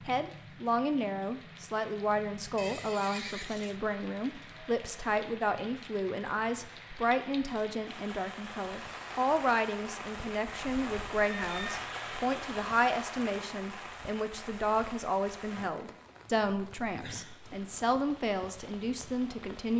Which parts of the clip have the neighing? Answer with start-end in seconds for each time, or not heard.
2.5-3.8, 11.2-11.8.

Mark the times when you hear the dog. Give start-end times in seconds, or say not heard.
not heard.